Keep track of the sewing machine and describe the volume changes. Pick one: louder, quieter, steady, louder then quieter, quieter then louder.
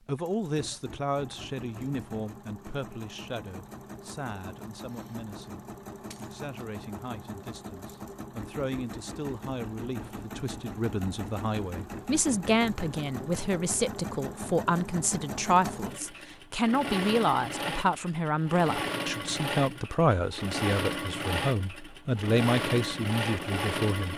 louder.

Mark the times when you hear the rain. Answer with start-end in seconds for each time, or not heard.
not heard.